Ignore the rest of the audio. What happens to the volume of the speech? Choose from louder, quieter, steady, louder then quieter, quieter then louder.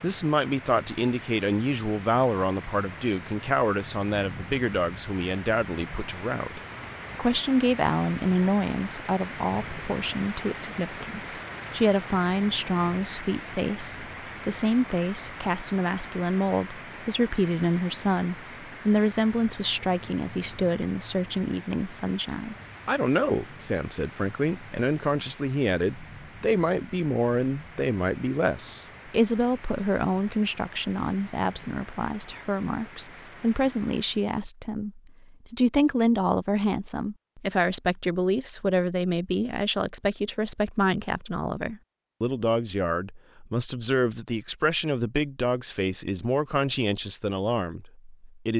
steady.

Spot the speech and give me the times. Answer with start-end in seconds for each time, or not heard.
0.0-48.5.